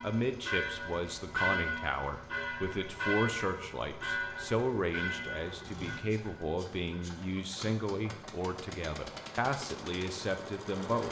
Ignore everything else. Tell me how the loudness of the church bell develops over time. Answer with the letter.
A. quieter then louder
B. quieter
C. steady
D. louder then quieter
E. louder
B.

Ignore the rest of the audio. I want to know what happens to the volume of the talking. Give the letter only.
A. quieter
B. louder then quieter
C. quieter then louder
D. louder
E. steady
E.